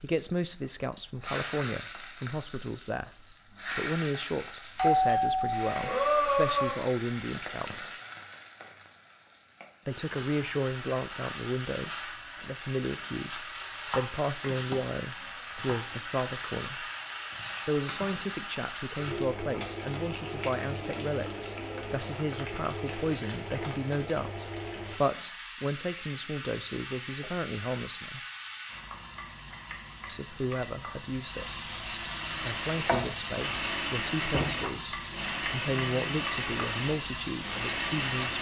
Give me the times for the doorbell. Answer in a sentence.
You can hear the doorbell from 4.8 to 6.8 s.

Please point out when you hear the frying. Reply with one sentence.
You can hear the frying from 0.0 to 38.3 s.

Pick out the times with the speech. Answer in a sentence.
You can hear the speech from 0.0 to 7.9 s, from 9.8 to 16.9 s, from 17.6 to 28.2 s, from 30.1 to 31.6 s and from 32.4 to 38.3 s.